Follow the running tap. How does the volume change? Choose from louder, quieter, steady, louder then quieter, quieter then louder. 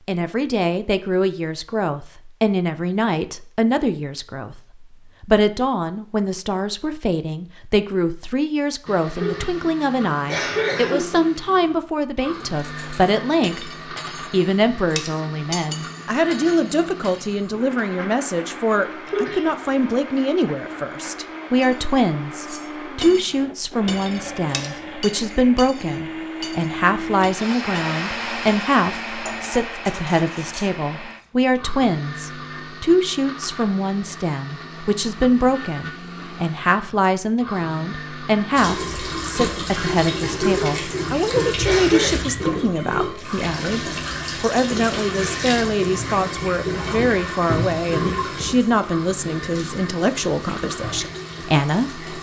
quieter.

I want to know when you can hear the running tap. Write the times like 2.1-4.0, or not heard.
38.5-52.1.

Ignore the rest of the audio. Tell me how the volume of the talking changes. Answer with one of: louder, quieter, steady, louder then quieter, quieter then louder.
steady.